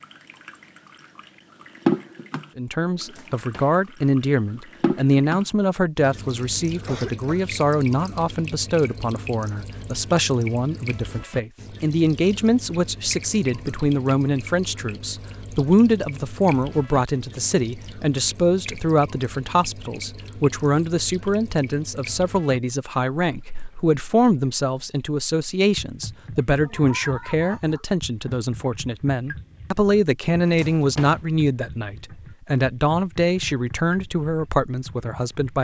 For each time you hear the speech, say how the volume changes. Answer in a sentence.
You can hear the speech from 2.5 to 35.5 s, at a steady volume.